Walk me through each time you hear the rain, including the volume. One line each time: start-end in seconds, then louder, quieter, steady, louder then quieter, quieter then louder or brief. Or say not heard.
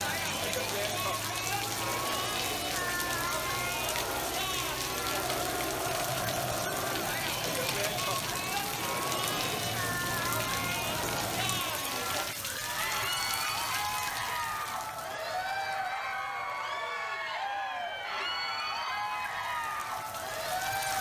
0.0-20.9 quieter.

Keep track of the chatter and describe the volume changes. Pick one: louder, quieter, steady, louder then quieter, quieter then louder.
steady.